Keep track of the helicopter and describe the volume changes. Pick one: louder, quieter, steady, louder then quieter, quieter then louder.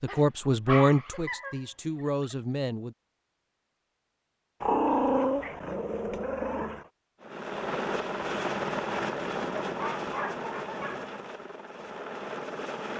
quieter.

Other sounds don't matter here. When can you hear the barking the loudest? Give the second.
5 s.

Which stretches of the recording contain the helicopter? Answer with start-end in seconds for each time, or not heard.
7.2-12.9.